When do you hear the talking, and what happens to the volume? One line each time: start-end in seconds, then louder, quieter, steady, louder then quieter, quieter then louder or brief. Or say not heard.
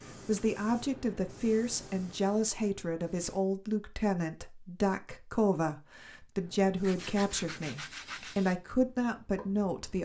0.2-10.0 steady.